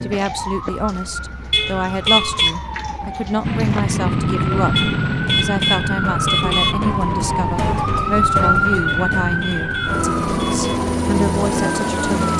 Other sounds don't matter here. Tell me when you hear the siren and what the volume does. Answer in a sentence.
You can hear the siren from 0.0 to 12.3 s, getting louder then quieter.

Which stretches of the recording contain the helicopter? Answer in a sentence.
The helicopter can be heard from 3.4 to 12.3 s.